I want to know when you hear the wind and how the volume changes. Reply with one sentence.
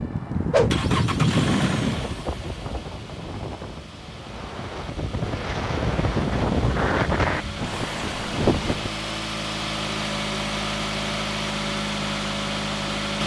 The wind can be heard from 0.0 to 8.9 s, getting quieter then louder.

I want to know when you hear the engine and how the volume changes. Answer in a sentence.
The engine can be heard from 0.0 to 13.2 s, getting quieter then louder.